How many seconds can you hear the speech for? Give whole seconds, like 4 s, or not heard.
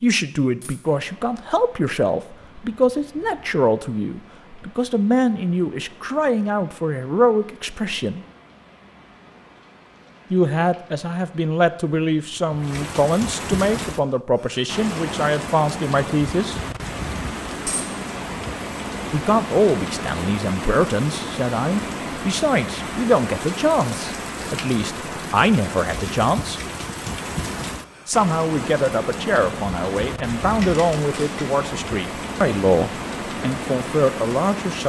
29 s.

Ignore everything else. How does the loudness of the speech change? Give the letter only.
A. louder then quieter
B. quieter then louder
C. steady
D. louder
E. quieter
C.